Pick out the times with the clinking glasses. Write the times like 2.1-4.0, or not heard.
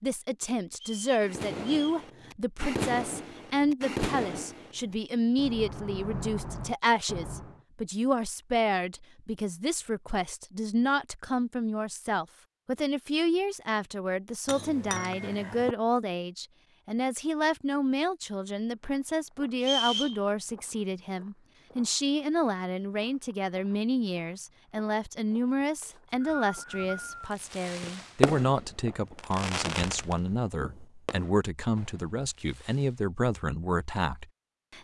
14.4-15.8.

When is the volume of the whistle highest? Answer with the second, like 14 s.
20 s.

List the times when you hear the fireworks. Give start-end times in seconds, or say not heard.
1.2-7.6, 26.7-33.0.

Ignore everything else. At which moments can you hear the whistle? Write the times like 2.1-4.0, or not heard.
0.8-2.0, 19.6-20.1, 25.8-27.3.